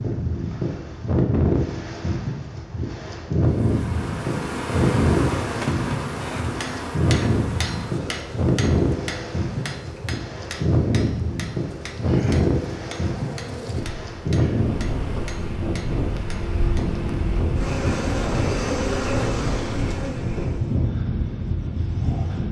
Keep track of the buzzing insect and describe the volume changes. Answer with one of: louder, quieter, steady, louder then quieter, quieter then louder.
quieter then louder.